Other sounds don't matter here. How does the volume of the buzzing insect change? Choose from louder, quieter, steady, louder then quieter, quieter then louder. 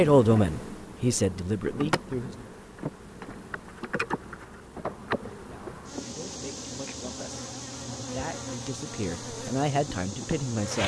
steady.